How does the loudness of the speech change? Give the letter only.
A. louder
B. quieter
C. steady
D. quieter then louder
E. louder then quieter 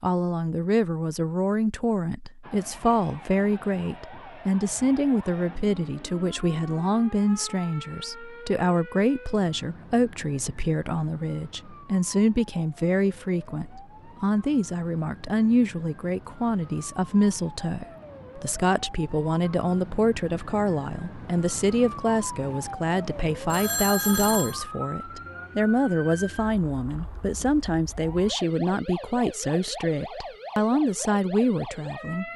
C.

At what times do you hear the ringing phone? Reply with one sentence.
The ringing phone can be heard from 23.5 to 24.6 s.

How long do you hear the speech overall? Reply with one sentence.
You can hear the speech for 32 seconds altogether.